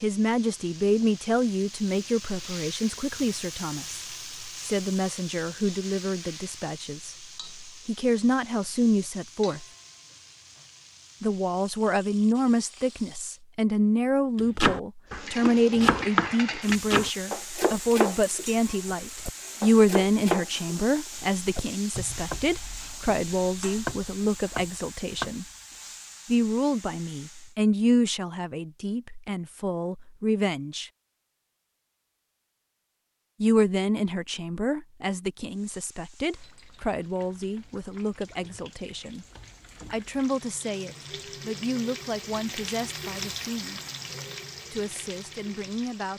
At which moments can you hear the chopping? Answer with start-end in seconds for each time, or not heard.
14.3-25.4.